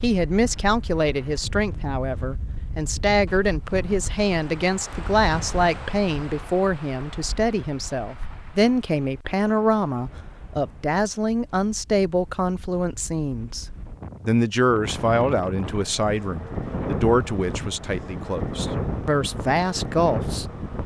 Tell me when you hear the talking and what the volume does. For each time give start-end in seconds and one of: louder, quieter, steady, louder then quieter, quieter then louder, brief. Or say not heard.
0.0-13.7 steady
14.2-20.4 quieter then louder.